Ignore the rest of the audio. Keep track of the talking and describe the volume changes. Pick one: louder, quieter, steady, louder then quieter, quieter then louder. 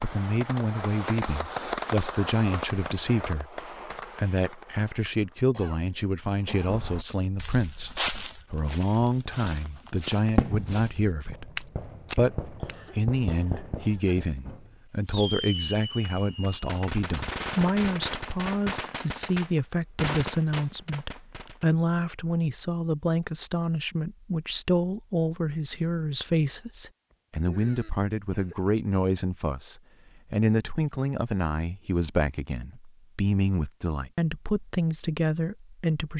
steady.